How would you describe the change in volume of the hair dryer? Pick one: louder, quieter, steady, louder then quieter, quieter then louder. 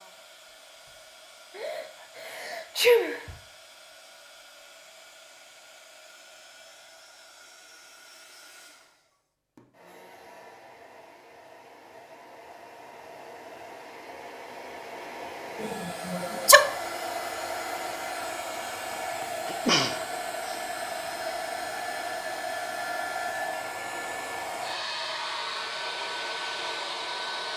louder.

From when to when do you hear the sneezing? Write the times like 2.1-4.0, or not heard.
1.6-3.4, 15.6-16.7, 19.2-20.6.